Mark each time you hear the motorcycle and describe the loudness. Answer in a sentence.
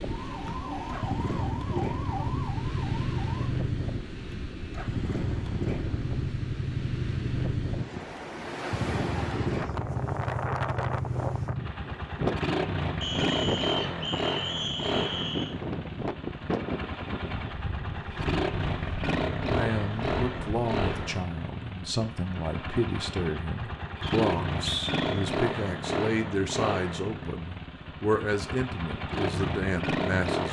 You can hear the motorcycle from 0.0 to 30.4 s, at a steady volume.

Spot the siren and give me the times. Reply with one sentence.
You can hear the siren from 0.0 to 3.5 s.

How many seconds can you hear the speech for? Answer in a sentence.
The speech can be heard for 11 seconds in total.